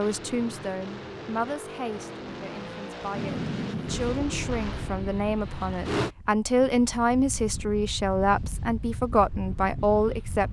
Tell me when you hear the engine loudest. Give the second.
6 s.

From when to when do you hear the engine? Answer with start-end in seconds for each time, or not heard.
0.0-6.1.